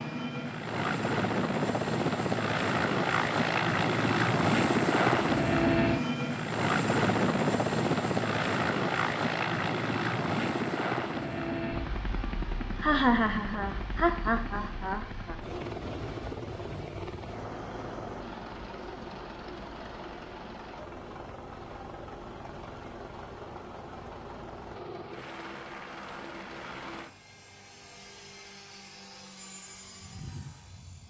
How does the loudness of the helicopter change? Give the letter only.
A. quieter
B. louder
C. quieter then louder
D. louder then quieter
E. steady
A.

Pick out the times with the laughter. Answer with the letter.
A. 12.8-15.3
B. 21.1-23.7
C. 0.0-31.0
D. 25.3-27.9
A.